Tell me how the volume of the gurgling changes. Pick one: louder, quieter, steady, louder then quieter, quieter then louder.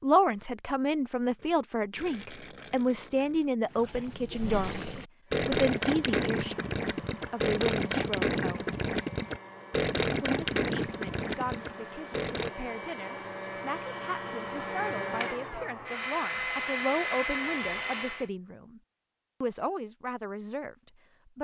louder.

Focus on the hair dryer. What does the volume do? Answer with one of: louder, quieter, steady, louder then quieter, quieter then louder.
louder.